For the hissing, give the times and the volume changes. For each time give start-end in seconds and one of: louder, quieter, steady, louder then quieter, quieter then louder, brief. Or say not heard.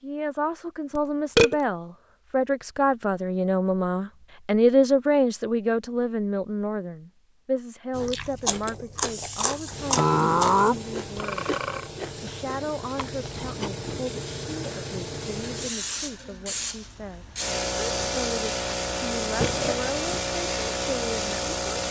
9.1-21.8 louder.